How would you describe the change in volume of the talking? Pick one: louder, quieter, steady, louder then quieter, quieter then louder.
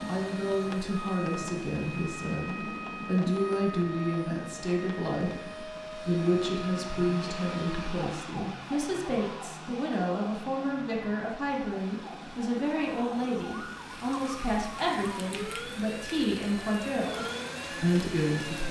steady.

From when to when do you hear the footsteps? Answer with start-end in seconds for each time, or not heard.
not heard.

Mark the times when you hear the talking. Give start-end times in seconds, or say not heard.
0.1-18.6.